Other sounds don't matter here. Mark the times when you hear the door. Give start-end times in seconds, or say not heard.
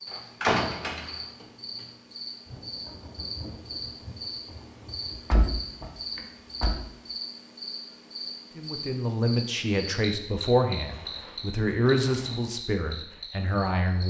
0.1-1.4, 5.1-6.8, 10.8-12.4.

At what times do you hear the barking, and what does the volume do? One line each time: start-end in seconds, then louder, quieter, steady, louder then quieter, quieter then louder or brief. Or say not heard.
not heard.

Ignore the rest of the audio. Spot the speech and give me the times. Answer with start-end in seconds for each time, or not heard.
8.6-14.0.